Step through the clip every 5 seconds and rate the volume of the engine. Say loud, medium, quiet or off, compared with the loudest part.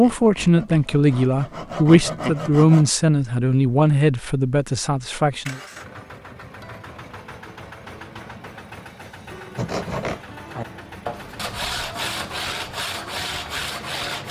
off, loud, loud.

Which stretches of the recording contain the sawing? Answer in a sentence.
You can hear the sawing from 0.0 to 2.9 s and from 9.6 to 14.2 s.